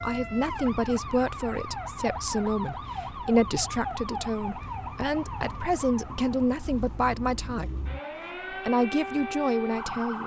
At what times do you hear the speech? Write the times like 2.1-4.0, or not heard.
0.0-7.7, 8.5-10.2.